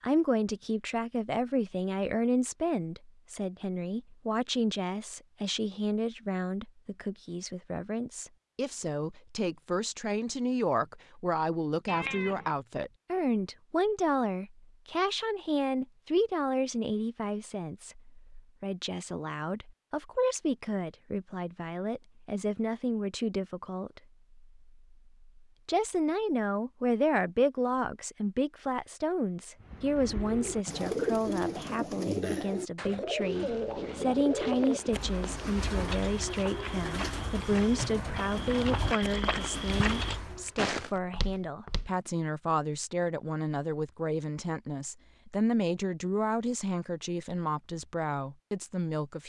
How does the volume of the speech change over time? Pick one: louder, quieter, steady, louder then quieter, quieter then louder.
steady.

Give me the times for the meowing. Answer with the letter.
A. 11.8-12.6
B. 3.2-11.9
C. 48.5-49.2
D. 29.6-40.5
A.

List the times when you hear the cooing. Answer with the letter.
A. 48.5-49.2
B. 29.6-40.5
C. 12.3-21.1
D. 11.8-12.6
B.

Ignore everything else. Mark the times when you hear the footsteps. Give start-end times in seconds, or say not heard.
33.1-41.9.